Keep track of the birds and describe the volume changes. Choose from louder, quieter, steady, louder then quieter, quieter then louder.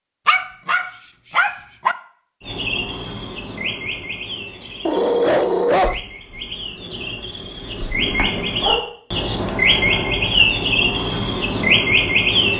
quieter then louder.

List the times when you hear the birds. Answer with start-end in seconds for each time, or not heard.
2.4-12.5.